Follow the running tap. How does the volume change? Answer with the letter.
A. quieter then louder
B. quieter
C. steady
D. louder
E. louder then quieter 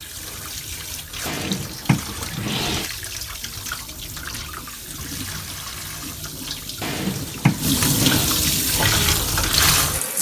D.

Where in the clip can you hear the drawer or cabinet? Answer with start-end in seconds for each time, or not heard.
1.2-2.9, 6.8-8.3.